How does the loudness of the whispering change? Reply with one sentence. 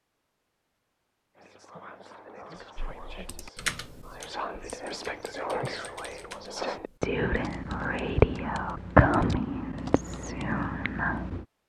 The loudness of the whispering goes up, then down.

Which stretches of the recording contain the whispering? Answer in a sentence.
The whispering can be heard from 1.4 to 11.4 s.